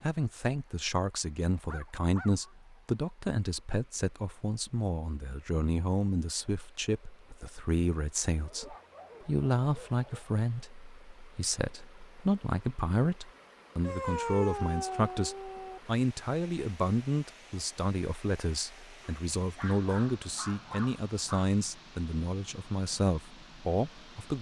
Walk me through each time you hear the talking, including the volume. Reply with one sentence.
You can hear the talking from 0.0 to 24.3 s, at a steady volume.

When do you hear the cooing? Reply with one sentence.
You can't hear the cooing here.